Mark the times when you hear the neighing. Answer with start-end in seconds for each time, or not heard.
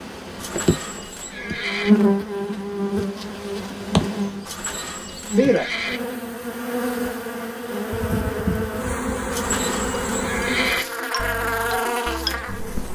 0.3-1.9, 4.5-6.0, 9.3-10.8.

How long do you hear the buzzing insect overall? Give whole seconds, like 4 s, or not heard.
13 s.